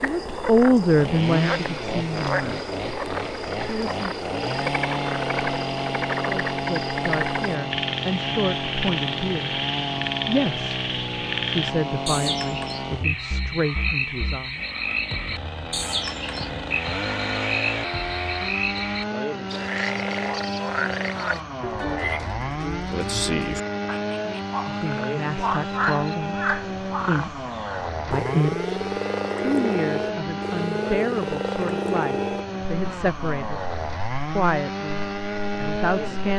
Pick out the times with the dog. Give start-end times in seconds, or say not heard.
not heard.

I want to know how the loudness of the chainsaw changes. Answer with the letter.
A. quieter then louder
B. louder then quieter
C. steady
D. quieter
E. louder
C.